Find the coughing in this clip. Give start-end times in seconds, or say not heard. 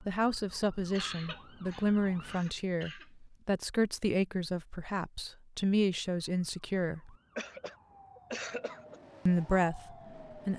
0.9-3.1, 7.3-9.0.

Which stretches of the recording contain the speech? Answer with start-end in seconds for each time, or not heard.
0.0-7.2, 9.2-10.5.